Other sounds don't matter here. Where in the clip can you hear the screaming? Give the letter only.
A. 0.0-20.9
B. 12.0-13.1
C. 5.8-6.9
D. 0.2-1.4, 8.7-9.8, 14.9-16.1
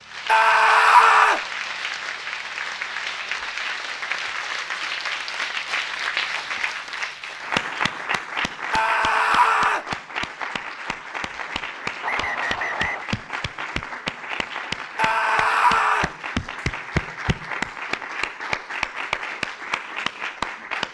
D.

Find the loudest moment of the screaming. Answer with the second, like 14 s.
1 s.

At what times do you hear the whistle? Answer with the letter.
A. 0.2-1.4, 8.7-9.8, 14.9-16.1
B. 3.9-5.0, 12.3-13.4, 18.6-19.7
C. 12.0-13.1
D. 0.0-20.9
C.